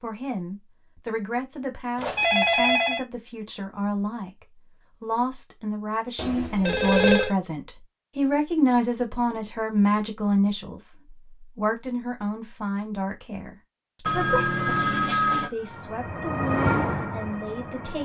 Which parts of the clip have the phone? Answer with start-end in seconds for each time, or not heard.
1.9-3.0, 6.2-7.3, 14.1-15.5.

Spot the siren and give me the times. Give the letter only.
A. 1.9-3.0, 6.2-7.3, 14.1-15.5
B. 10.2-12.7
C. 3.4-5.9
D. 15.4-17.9
D.